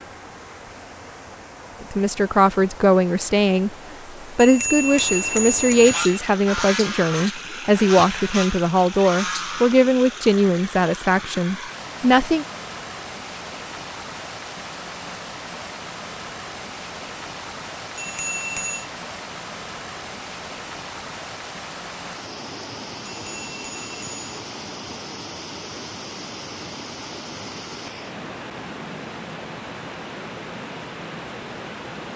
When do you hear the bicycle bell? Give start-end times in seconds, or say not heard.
4.3-6.2, 17.9-18.9, 23.1-24.2.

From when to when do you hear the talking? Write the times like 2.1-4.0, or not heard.
1.9-3.8, 4.3-12.4.